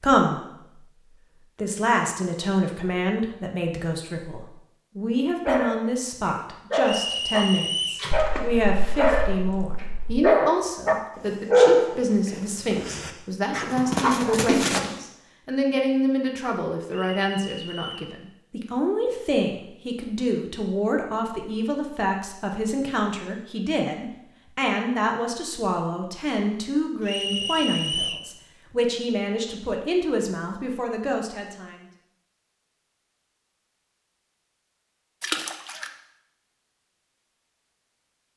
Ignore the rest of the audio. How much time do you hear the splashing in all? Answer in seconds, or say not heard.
3 s.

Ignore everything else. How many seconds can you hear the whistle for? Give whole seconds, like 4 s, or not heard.
4 s.